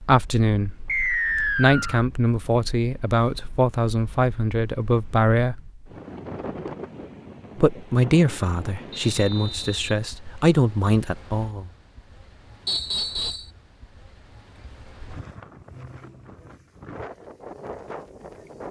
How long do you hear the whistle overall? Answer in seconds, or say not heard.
3 s.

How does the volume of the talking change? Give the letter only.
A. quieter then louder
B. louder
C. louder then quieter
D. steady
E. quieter
D.